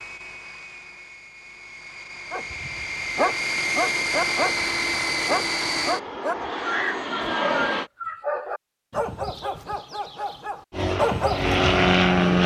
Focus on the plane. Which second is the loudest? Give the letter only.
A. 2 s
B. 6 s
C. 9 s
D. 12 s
D.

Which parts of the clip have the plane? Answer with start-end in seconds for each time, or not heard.
0.0-7.9, 10.7-12.4.